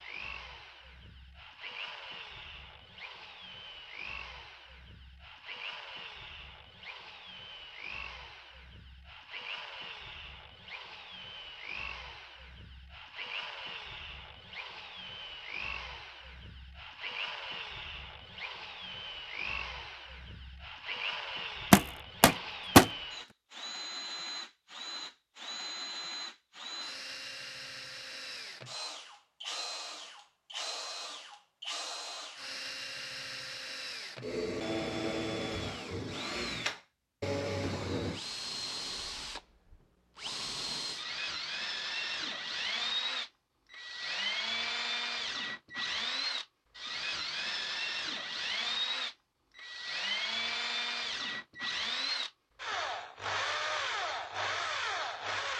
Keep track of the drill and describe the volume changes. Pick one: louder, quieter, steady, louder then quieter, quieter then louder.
louder.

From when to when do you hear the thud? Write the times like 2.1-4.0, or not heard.
21.7-22.9.